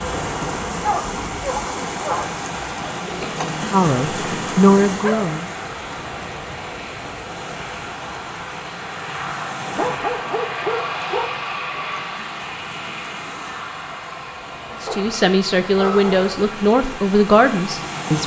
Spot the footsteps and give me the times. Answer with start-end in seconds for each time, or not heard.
not heard.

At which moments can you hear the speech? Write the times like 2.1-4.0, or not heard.
3.1-5.5, 14.8-18.2.